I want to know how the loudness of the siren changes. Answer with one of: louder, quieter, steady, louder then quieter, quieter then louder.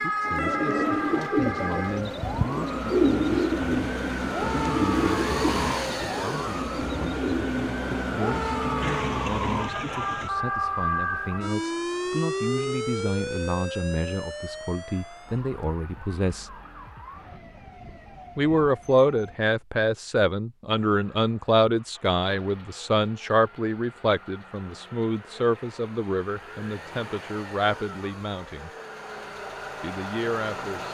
quieter.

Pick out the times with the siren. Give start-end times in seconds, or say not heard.
0.0-19.4.